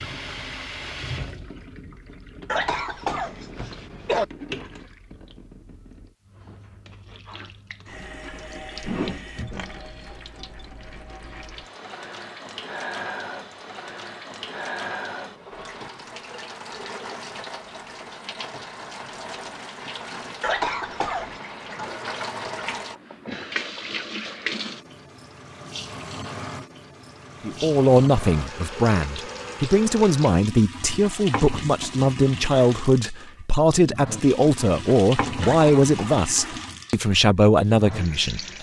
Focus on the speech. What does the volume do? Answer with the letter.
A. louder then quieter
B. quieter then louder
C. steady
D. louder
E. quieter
C.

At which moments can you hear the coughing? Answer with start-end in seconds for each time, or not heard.
2.5-4.2, 20.4-21.4, 35.4-36.6.